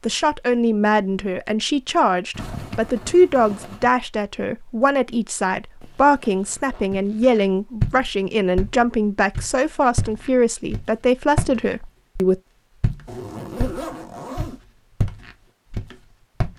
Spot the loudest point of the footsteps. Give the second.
8 s.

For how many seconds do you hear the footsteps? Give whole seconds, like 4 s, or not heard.
9 s.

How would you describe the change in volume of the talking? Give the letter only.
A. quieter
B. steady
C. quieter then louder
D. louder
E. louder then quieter
B.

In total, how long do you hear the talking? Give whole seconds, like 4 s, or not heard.
12 s.